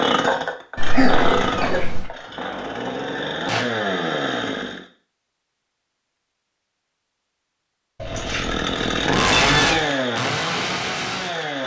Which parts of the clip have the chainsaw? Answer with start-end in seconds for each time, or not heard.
0.0-4.8, 8.1-11.6.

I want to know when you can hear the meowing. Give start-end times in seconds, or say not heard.
0.8-2.1, 8.0-9.8.